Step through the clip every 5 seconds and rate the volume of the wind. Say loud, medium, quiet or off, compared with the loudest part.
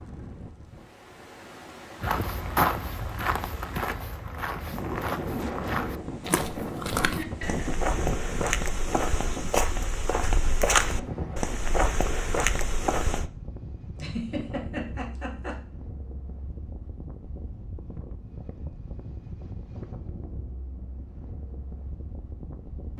medium, loud, medium, medium, medium.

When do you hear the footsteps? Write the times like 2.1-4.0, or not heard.
2.0-13.2.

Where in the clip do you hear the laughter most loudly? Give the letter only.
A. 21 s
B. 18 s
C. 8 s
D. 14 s
D.